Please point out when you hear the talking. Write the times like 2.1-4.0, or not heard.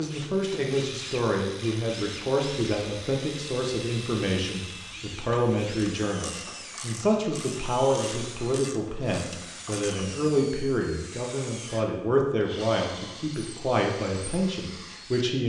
0.0-15.4.